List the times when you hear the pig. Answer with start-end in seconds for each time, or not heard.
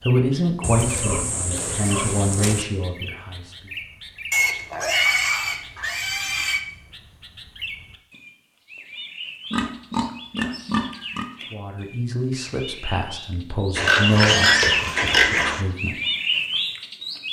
0.6-2.6, 4.3-6.6, 9.5-11.2, 13.8-15.7.